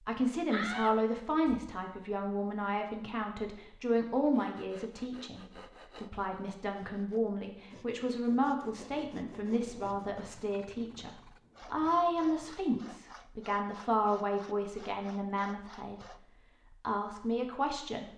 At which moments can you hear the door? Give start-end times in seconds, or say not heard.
0.5-1.7.